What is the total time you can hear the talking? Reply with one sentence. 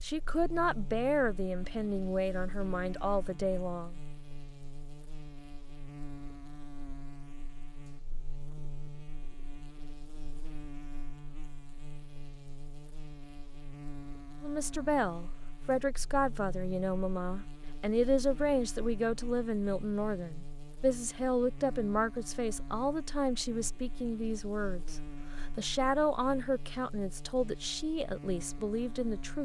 You can hear the talking for 19 seconds altogether.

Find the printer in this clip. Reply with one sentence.
You can't hear the printer here.